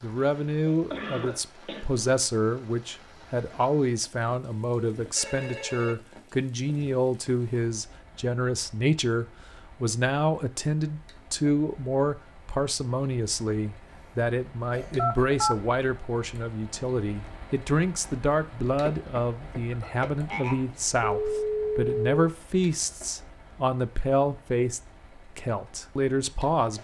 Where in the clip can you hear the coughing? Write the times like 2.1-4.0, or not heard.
0.7-1.9, 13.8-15.2, 18.9-20.8.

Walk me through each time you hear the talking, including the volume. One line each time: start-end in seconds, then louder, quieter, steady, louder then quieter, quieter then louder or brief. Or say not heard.
0.0-26.7 steady.